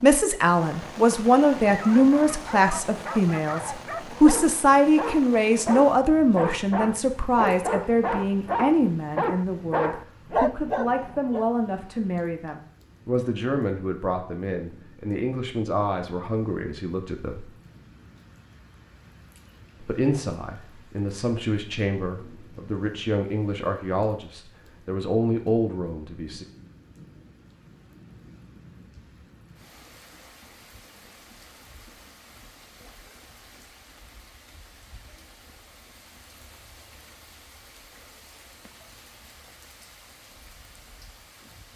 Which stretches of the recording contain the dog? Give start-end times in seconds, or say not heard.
1.5-11.4.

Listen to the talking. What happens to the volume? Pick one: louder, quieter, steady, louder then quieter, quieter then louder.
quieter.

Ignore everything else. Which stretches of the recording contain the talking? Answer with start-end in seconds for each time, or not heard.
0.0-17.5, 19.8-26.4.